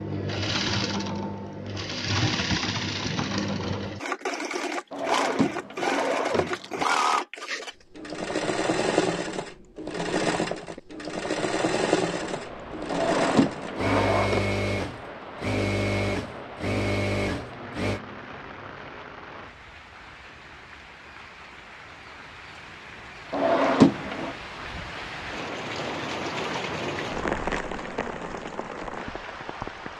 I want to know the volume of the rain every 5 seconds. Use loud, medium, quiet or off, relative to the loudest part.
off, off, medium, medium, medium, loud.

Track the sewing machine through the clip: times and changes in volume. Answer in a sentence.
You can hear the sewing machine from 0.0 to 18.0 s, at a steady volume.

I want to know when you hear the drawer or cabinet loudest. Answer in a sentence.
The loudest moment of the drawer or cabinet is at 24 seconds.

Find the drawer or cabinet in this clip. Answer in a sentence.
You can hear the drawer or cabinet from 4.9 to 6.8 s, from 12.9 to 14.4 s and from 23.3 to 24.4 s.